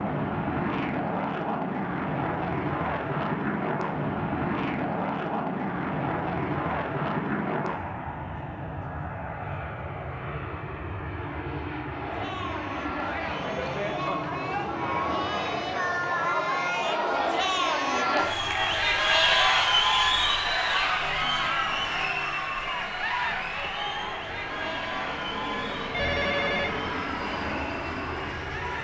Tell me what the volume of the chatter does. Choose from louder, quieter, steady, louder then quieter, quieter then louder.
louder then quieter.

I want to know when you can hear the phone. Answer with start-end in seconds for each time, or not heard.
25.9-26.8.